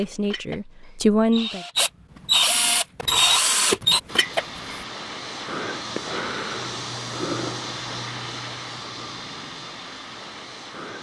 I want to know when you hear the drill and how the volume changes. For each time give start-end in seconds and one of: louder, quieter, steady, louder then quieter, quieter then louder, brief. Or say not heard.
0.0-4.8 louder.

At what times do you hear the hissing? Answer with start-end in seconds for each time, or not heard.
4.0-10.9.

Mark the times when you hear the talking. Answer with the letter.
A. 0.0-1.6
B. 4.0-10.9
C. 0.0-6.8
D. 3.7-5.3
A.